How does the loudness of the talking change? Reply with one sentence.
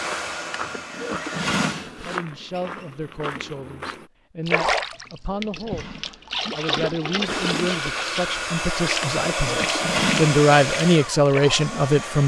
The volume of the talking goes up.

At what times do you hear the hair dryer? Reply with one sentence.
The hair dryer can be heard from 0.0 to 1.8 s and from 7.2 to 12.2 s.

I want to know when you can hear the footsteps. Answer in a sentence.
The footsteps can be heard from 0.0 to 4.1 s.